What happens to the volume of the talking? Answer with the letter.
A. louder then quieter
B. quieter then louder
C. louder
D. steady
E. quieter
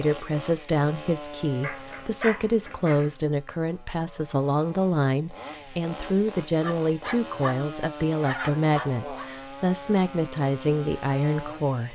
D.